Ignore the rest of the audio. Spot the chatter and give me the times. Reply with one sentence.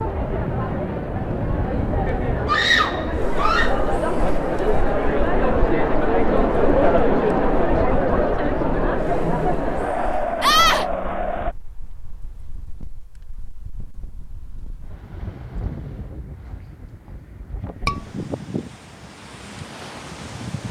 You can hear the chatter from 0.0 to 11.6 s.